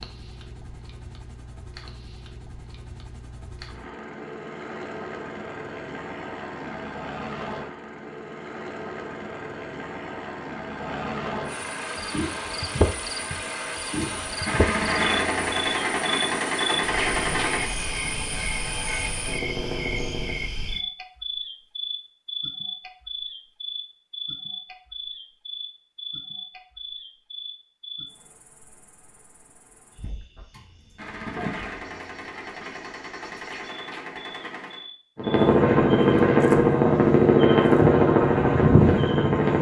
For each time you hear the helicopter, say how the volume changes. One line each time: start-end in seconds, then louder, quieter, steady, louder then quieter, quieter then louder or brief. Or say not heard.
0.0-20.4 louder
35.1-39.5 steady.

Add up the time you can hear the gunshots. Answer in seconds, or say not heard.
8 s.